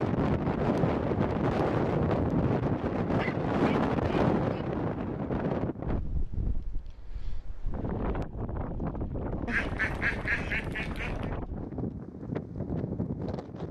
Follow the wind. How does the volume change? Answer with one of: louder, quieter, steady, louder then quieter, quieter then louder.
quieter.